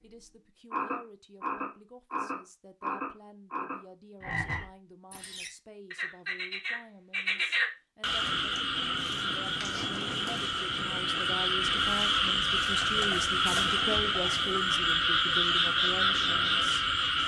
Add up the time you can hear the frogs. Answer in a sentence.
The frogs can be heard for 17 seconds in total.